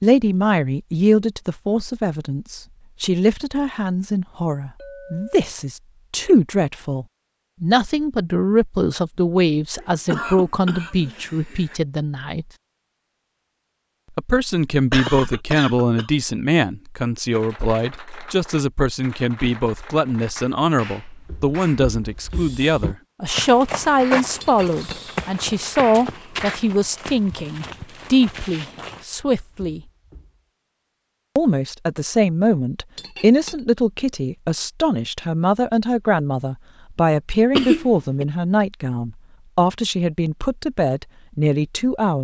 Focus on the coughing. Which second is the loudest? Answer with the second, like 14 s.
38 s.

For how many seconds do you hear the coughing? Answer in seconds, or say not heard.
4 s.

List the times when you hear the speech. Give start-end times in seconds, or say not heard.
0.0-12.4, 14.2-29.8, 31.4-42.1.